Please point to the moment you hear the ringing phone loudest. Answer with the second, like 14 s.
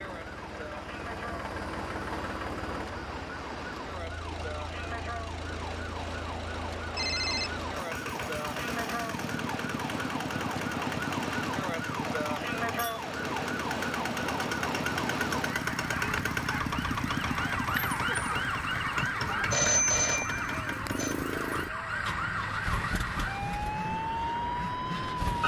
20 s.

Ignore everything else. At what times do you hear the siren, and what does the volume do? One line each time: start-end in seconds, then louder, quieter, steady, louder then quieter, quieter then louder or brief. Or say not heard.
0.0-25.4 louder.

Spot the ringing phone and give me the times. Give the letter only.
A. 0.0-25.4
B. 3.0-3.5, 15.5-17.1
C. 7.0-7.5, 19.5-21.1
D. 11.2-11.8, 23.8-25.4
C.